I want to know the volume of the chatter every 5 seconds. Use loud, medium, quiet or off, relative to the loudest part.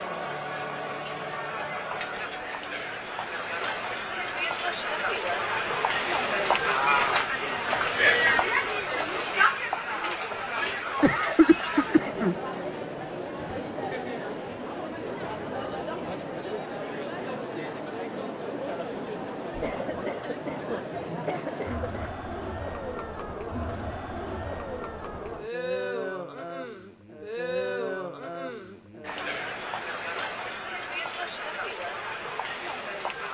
medium, loud, medium, medium, medium, medium, medium.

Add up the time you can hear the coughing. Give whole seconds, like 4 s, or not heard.
4 s.